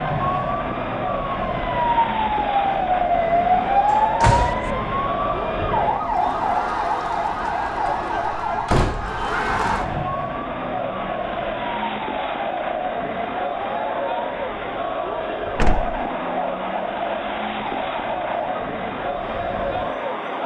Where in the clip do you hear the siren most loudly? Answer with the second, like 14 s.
4 s.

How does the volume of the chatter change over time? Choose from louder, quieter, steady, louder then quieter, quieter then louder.
steady.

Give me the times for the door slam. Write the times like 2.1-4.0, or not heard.
3.9-4.7, 8.4-9.2, 15.6-16.1.